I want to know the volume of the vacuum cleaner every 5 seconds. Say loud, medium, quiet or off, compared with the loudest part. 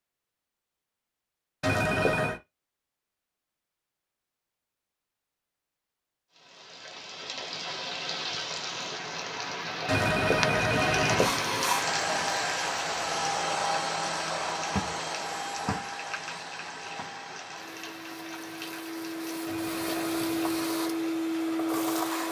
off, off, loud, medium, loud.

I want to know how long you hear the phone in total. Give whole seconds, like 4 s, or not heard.
4 s.